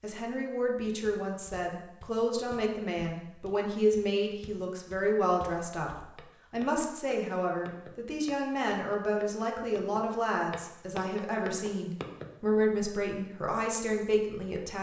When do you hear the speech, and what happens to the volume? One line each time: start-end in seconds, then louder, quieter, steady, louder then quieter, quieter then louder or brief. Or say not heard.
0.0-14.7 steady.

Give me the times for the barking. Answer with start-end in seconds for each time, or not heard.
not heard.